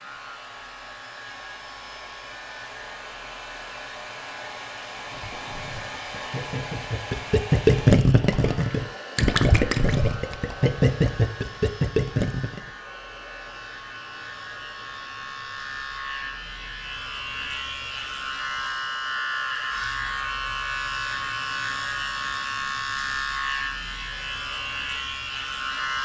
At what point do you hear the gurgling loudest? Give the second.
8 s.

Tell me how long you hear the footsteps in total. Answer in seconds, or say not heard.
not heard.